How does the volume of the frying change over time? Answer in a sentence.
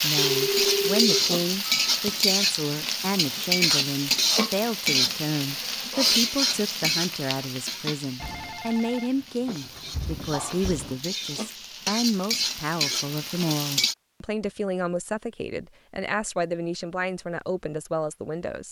The loudness of the frying goes down, then up.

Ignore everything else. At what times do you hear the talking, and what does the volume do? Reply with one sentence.
You can hear the talking from 0.0 to 18.6 s, at a steady volume.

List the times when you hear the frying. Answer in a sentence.
The frying can be heard from 0.0 to 13.9 s.